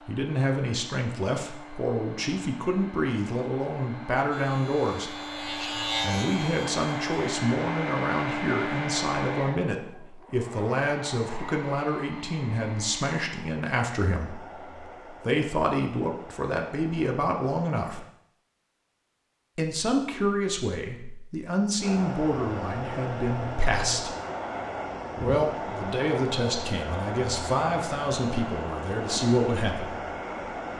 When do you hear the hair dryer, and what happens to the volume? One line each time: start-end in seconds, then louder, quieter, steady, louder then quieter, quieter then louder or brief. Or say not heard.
0.0-18.1 louder then quieter
21.8-30.7 steady.